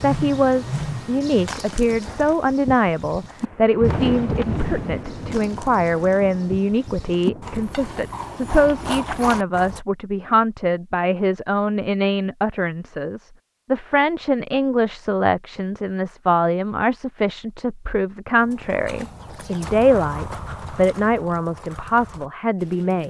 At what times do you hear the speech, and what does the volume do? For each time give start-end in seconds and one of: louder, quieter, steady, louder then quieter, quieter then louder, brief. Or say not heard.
0.0-23.0 steady.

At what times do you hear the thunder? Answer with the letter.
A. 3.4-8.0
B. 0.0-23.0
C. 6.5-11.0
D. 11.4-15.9
A.